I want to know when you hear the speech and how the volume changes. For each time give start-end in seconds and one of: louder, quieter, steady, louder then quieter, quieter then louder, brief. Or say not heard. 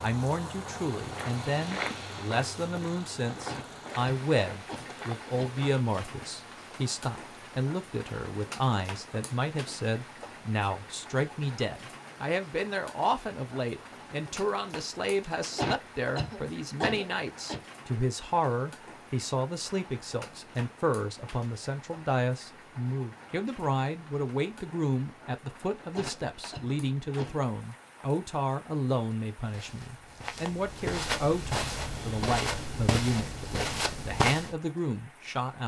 0.0-35.6 steady.